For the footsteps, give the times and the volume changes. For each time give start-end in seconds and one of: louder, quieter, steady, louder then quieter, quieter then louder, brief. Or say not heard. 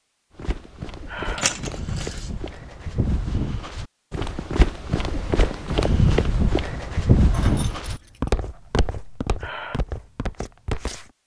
0.3-11.1 louder then quieter.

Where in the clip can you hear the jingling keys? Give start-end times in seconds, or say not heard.
1.2-2.3, 7.3-8.4.